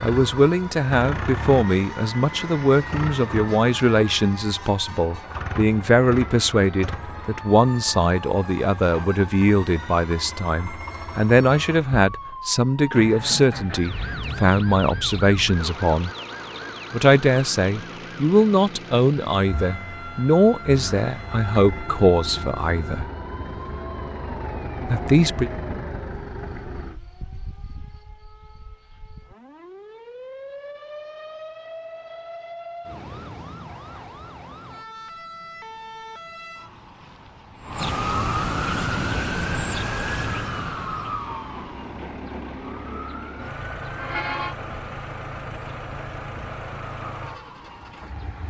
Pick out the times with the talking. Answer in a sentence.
You can hear the talking from 0.0 to 16.1 s, from 16.9 to 23.1 s and from 24.9 to 25.5 s.